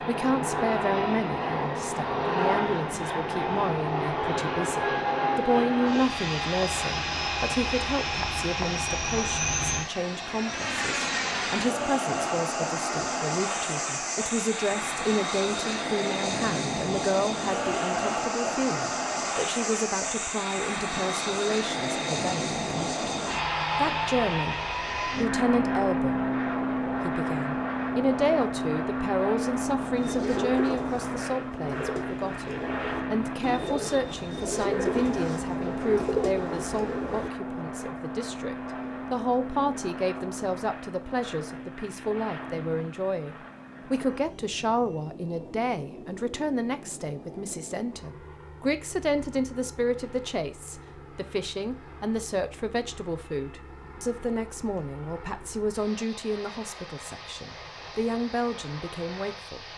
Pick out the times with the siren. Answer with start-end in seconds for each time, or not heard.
not heard.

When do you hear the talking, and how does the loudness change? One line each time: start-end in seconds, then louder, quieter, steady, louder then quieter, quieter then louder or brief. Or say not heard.
0.0-59.6 steady.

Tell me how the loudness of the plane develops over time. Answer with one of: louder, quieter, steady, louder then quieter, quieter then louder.
quieter.